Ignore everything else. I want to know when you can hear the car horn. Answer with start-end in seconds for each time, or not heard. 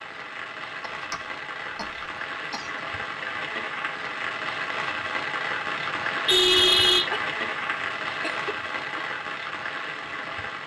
5.8-7.1.